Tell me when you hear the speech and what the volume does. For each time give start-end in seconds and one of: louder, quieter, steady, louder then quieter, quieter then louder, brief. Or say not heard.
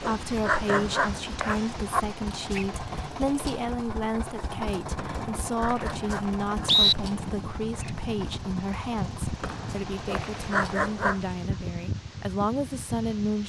0.0-13.4 steady.